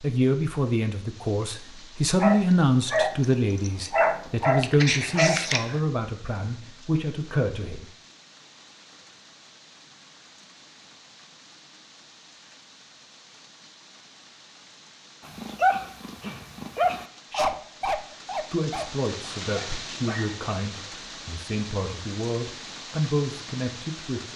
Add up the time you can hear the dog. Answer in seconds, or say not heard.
9 s.